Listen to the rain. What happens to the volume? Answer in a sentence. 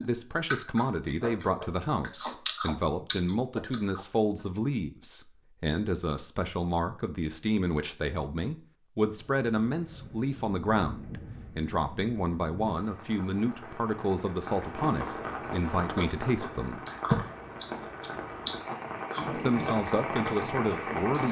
The volume of the rain goes up.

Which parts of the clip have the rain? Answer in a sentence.
You can hear the rain from 9.1 to 21.2 s.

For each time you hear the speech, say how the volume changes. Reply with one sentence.
The speech can be heard from 0.0 to 16.8 s, at a steady volume; and briefly from 19.2 to 21.2 s.